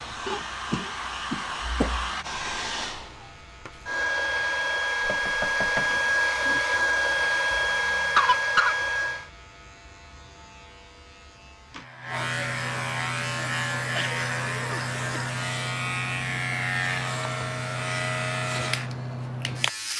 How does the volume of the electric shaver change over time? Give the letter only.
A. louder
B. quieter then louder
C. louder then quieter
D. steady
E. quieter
A.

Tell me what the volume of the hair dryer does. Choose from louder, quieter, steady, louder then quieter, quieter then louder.
louder.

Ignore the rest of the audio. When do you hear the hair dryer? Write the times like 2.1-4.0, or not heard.
0.0-9.3.